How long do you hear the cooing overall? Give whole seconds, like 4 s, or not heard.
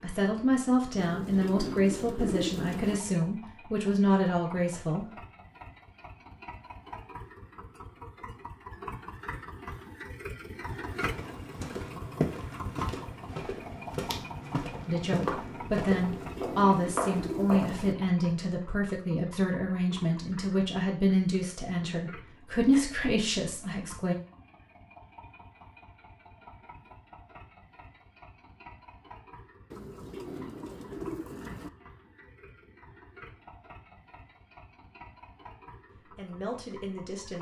6 s.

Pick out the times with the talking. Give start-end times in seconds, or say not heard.
0.0-5.0, 14.8-24.1, 36.0-37.3.